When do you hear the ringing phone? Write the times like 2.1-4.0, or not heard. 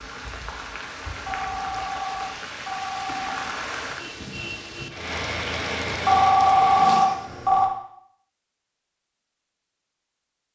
1.2-3.5, 6.0-7.7.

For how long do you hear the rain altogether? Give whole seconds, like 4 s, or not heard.
7 s.